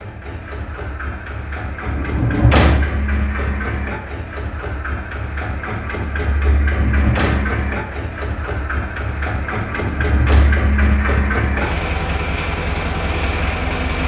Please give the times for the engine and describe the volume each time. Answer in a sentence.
You can hear the engine from 0.0 to 14.0 s, getting louder.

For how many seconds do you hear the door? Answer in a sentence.
You can hear the door for 3 seconds altogether.